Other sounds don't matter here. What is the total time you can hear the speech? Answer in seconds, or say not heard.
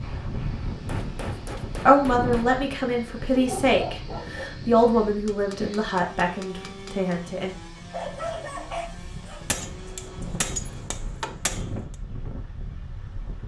6 s.